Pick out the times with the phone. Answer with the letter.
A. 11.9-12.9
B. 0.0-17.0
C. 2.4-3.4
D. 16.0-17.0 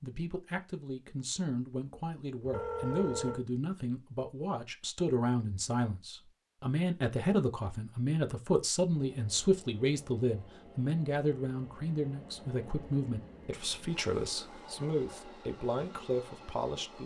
C.